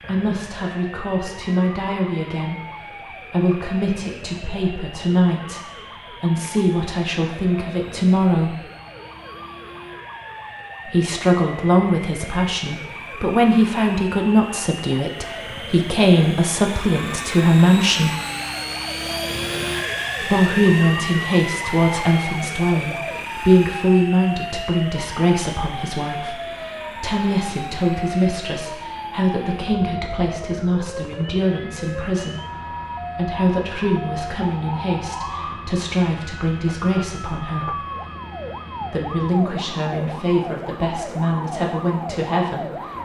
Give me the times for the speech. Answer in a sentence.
You can hear the speech from 0.1 to 8.6 s, from 10.8 to 18.1 s, from 20.2 to 37.8 s and from 38.9 to 43.0 s.